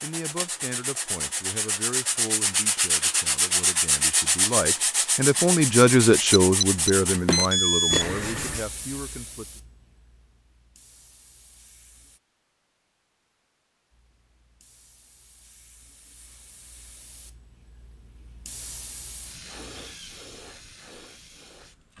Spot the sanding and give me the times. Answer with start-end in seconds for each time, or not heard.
0.0-8.7.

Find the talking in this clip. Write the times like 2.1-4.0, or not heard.
0.0-9.6.